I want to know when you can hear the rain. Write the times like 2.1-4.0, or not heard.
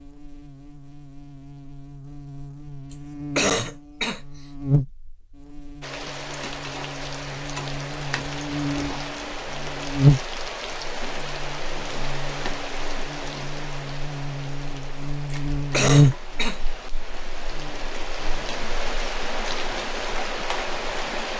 5.8-21.3.